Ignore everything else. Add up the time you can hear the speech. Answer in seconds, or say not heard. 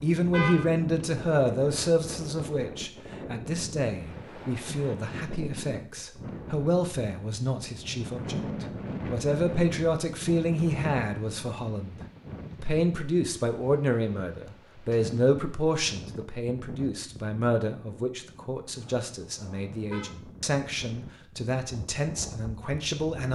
23 s.